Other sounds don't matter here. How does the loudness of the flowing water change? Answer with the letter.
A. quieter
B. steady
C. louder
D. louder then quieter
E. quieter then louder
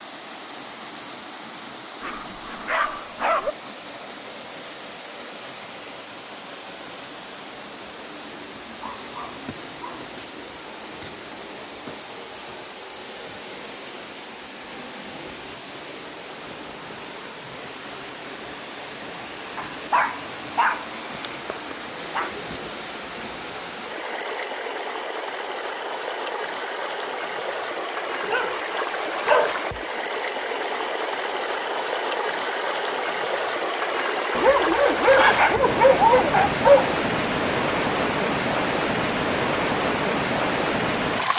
C.